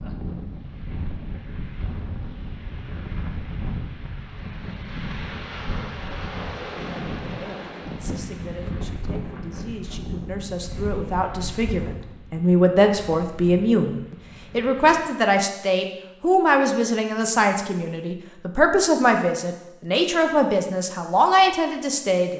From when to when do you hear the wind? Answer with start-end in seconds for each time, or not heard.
0.0-15.0.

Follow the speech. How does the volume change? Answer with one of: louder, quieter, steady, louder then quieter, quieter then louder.
louder.